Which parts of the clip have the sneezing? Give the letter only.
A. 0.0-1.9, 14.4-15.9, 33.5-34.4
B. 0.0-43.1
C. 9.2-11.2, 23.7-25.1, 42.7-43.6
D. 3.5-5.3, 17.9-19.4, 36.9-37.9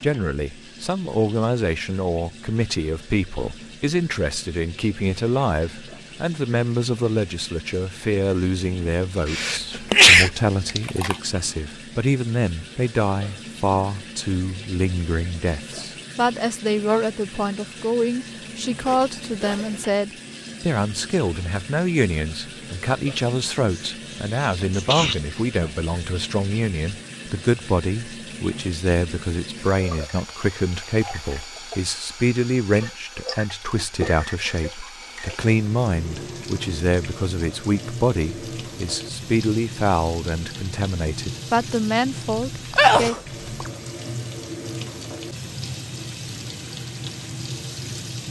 C.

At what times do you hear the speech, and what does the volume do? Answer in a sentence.
You can hear the speech from 0.0 to 43.1 s, at a steady volume.